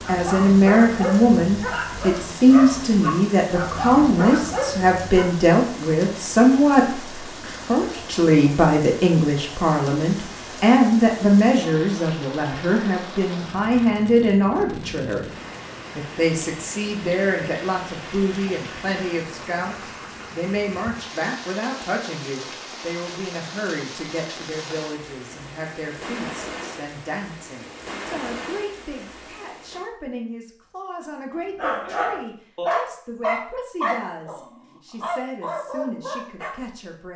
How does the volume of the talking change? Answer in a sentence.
The volume of the talking goes down.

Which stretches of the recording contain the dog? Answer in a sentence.
The dog can be heard from 0.0 to 5.3 s and from 31.6 to 36.5 s.